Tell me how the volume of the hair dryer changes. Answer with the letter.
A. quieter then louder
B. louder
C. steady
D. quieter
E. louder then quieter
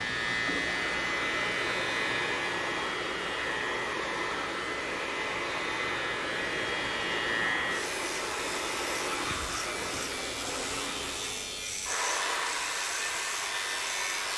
C.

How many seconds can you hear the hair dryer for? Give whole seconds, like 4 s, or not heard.
14 s.